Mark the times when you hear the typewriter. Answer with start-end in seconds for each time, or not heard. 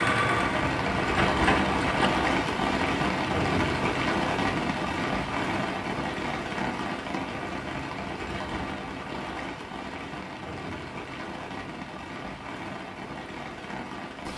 not heard.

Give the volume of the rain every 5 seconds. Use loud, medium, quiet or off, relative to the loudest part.
loud, medium, medium.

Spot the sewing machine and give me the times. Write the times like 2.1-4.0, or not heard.
0.0-2.1.